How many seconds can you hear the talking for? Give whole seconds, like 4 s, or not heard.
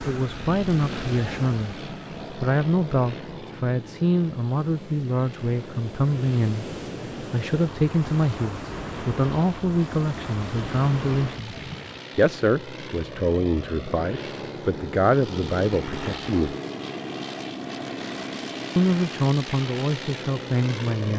18 s.